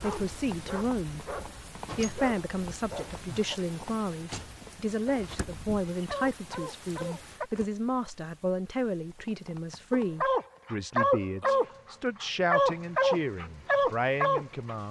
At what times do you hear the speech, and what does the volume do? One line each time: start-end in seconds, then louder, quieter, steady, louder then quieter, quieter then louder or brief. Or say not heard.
0.0-1.4 brief
1.9-14.8 steady.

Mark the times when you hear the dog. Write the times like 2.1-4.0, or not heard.
0.0-3.6, 5.0-7.5, 9.9-14.8.